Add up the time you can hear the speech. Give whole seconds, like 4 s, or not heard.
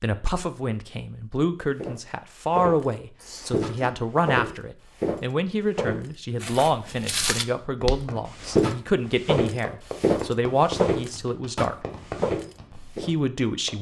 13 s.